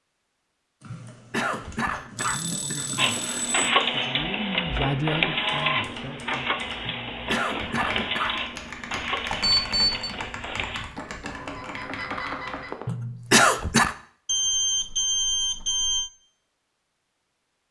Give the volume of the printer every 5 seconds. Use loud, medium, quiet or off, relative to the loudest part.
loud, loud, medium, off.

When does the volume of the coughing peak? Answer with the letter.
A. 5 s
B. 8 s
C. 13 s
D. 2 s
C.